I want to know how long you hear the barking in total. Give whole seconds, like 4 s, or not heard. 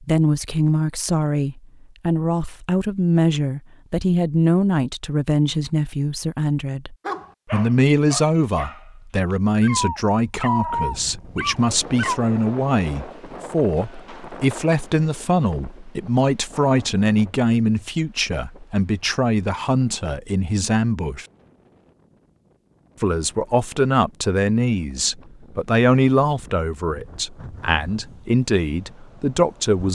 5 s.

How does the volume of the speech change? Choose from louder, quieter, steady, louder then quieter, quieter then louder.
steady.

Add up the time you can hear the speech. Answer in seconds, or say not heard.
28 s.